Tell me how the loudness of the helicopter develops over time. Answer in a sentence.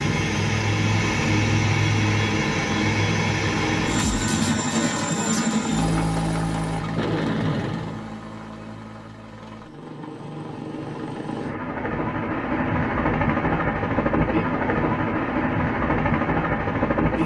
The loudness of the helicopter goes down, then up.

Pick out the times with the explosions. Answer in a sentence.
The explosions can be heard from 7.0 to 8.1 s.